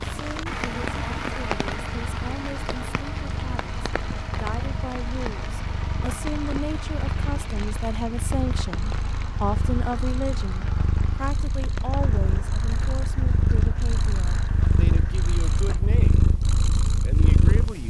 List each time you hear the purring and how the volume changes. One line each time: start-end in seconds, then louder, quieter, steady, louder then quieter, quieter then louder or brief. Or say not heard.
0.0-17.8 louder.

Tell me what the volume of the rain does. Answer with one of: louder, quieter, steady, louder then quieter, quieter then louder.
quieter.